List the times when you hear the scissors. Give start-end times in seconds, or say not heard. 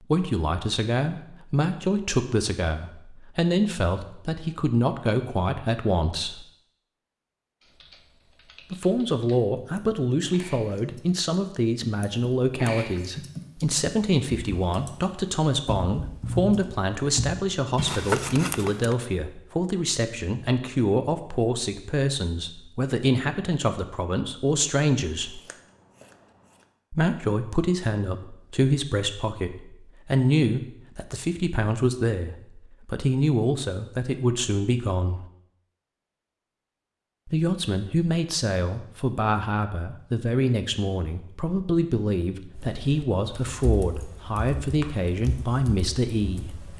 17.8-18.9, 25.2-26.6.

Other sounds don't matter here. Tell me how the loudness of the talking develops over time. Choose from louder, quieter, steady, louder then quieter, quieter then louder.
steady.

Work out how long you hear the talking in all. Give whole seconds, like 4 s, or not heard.
41 s.